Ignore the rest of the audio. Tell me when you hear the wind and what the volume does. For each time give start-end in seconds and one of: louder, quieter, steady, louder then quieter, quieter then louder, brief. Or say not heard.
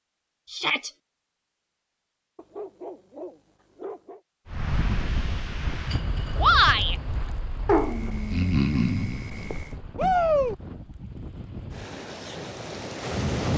4.5-13.5 quieter then louder.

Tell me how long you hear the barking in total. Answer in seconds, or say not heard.
4 s.